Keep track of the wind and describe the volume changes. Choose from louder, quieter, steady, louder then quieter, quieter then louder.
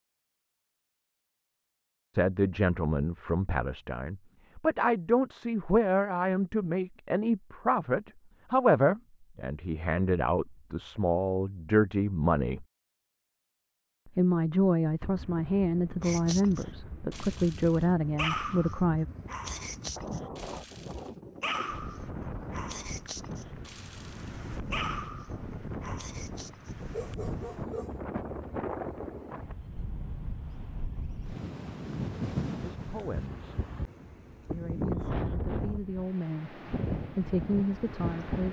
louder.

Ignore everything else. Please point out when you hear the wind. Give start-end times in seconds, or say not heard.
15.0-38.4.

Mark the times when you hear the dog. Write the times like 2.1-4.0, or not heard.
16.0-27.9.